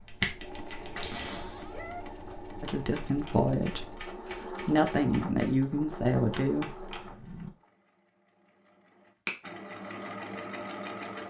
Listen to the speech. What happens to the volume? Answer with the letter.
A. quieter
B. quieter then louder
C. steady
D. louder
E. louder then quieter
B.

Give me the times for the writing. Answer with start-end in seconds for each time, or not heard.
not heard.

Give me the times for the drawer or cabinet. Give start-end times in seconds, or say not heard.
1.1-1.8, 7.0-7.5.